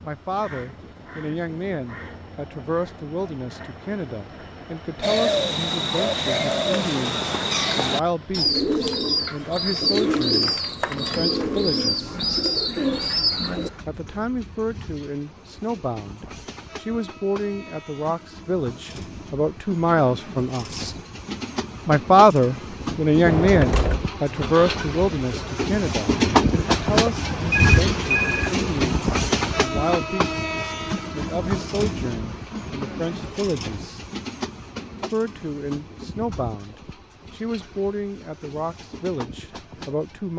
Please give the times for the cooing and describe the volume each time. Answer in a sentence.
You can hear the cooing from 5.0 to 13.7 s, at a steady volume.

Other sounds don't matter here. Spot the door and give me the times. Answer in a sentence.
The door can be heard from 23.2 to 24.9 s.